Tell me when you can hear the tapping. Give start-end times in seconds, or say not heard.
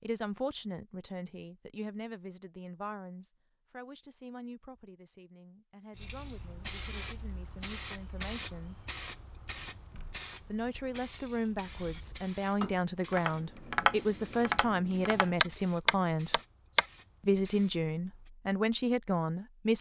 11.7-16.9.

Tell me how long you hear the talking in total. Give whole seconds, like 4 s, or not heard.
17 s.